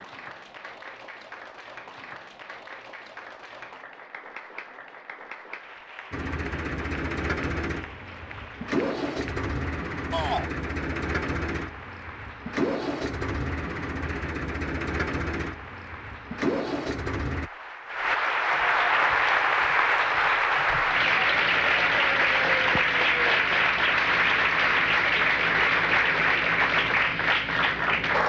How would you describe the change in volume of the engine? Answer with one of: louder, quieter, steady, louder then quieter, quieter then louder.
steady.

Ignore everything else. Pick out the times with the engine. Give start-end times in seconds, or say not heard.
6.1-17.5.